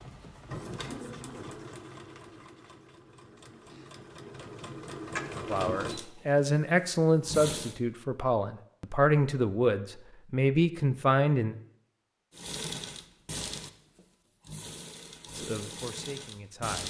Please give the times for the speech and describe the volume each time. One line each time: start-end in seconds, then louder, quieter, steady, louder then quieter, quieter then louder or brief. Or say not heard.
5.5-11.6 steady
15.3-16.8 brief.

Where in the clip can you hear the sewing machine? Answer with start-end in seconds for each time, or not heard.
0.0-7.8, 12.3-16.8.